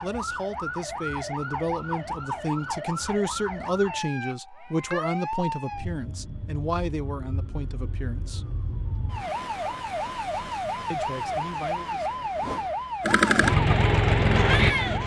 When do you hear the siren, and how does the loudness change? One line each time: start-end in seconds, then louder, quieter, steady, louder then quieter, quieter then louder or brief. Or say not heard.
0.0-15.0 quieter then louder.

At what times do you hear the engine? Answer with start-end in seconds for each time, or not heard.
13.0-15.0.